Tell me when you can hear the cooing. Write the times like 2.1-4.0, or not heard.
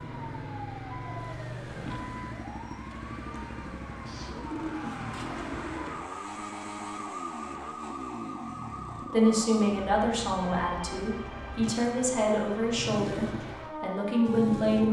4.0-6.0.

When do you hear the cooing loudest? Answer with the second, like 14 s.
5 s.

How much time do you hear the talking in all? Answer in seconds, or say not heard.
6 s.